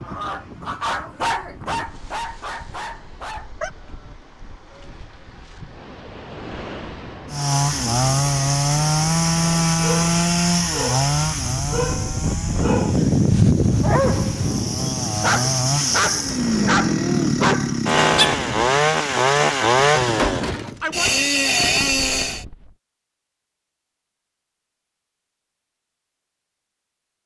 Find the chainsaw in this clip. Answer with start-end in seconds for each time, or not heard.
7.3-22.4.